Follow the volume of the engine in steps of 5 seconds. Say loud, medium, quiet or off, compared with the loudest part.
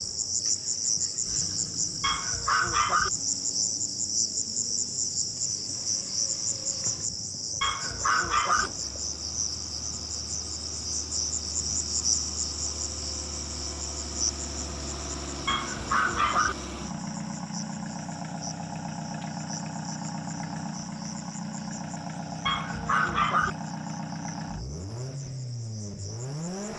quiet, quiet, medium, loud, loud, loud.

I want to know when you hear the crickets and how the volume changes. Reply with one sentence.
You can hear the crickets from 0.0 to 26.7 s, getting quieter.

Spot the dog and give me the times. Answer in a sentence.
You can hear the dog from 2.0 to 3.1 s, from 7.6 to 8.7 s, from 15.4 to 16.6 s and from 22.4 to 23.5 s.